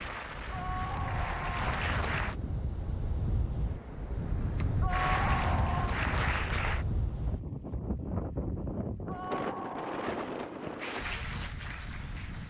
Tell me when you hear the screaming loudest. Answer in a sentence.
The volume of the screaming peaks at 5 seconds.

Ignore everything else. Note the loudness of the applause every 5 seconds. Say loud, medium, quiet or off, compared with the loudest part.
loud, loud, medium.